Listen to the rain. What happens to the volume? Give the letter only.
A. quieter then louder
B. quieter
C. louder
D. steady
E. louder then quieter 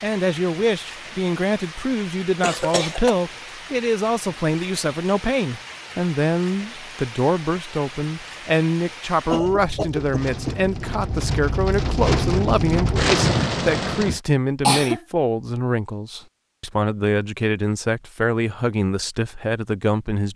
C.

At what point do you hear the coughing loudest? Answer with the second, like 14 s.
15 s.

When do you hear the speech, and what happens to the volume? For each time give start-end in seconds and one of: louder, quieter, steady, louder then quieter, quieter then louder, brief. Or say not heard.
0.0-20.3 steady.